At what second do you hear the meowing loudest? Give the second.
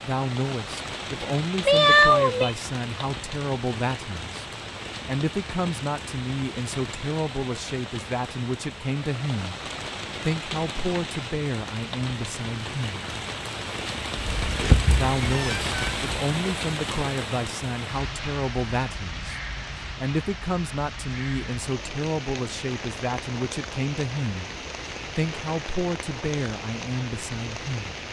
2 s.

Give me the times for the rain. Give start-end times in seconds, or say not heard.
0.0-28.0.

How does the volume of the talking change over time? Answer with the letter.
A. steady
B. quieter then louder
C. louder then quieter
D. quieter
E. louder
A.